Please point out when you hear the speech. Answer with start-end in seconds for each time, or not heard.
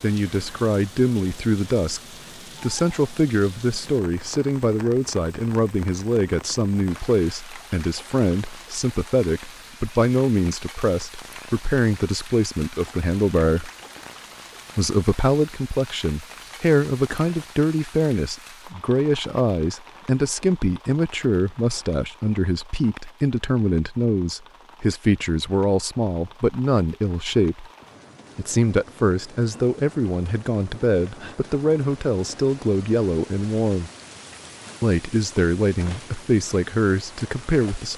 0.0-2.0, 2.6-13.7, 14.8-27.6, 28.4-33.9, 34.8-37.9.